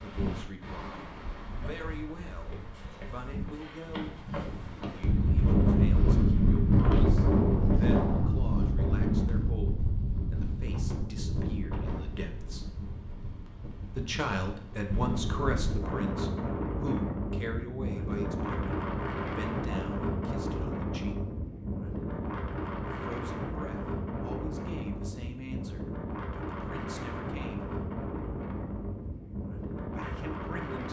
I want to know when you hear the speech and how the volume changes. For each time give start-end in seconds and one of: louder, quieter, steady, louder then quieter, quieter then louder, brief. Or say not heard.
0.0-12.8 steady
13.9-21.2 quieter
22.9-27.6 quieter then louder
29.8-30.8 brief.